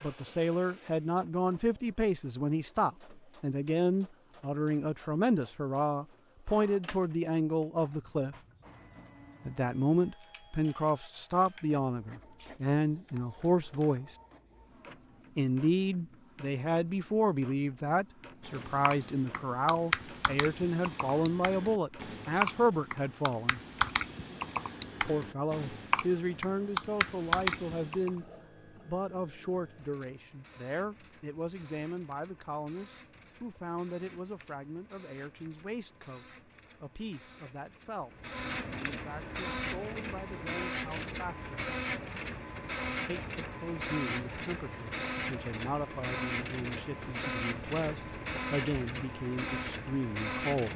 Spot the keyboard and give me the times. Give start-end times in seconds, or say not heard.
18.4-28.1.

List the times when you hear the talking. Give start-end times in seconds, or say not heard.
0.0-8.3, 9.4-14.2, 15.3-23.6, 25.0-28.2, 28.9-41.5, 43.0-50.7.